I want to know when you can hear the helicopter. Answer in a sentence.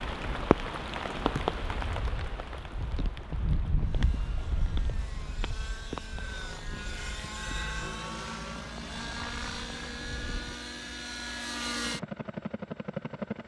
You can hear the helicopter from 3.8 to 13.4 s.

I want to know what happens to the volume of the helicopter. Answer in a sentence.
The volume of the helicopter goes up.